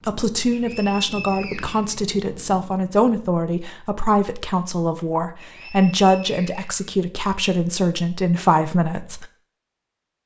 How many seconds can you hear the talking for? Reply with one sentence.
You can hear the talking for 9 seconds altogether.